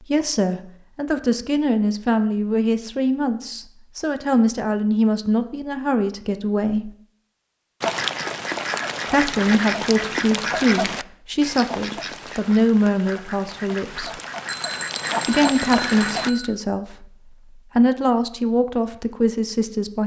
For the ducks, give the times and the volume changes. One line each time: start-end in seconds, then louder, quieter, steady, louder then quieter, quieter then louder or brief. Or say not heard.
7.8-16.3 quieter then louder.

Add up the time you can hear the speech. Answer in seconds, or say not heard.
17 s.